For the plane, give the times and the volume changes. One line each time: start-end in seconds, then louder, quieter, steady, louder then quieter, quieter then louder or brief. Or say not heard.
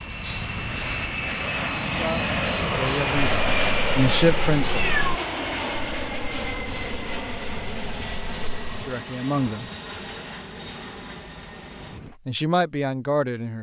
0.0-12.2 quieter.